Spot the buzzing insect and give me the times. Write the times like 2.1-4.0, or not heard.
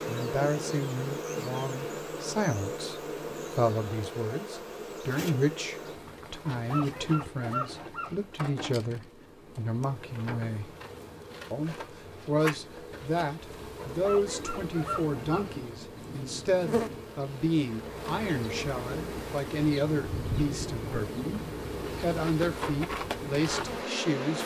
0.0-24.4.